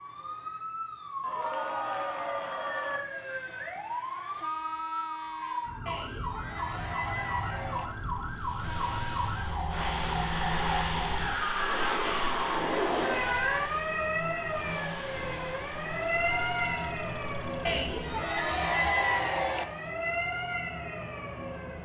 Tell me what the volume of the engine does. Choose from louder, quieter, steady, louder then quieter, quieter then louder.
louder then quieter.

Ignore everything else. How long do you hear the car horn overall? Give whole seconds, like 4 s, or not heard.
3 s.